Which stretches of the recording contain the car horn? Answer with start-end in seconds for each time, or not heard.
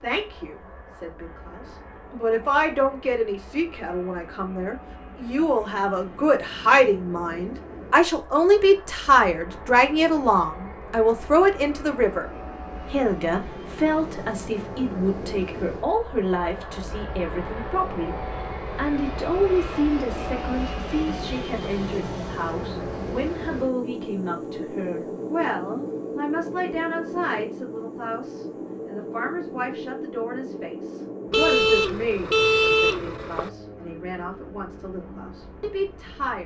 31.3-33.5.